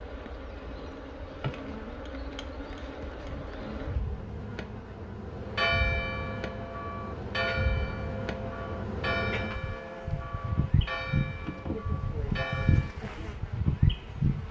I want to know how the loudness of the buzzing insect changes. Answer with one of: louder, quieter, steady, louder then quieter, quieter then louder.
louder.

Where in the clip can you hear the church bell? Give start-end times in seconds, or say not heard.
5.4-13.0.